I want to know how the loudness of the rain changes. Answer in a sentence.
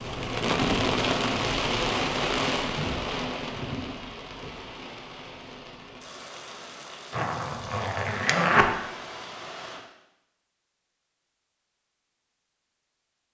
The volume of the rain goes down.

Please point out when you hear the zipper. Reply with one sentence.
The zipper can be heard from 7.1 to 8.7 s.